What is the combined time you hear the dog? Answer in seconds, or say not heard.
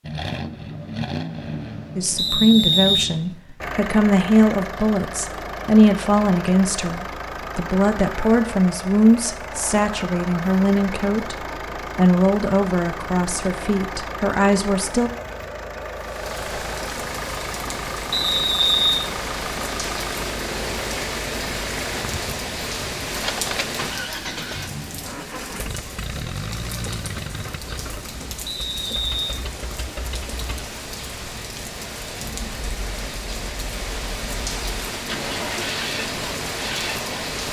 not heard.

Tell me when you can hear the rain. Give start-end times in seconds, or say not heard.
15.9-37.4.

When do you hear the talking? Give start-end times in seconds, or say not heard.
1.9-11.3, 11.9-15.1.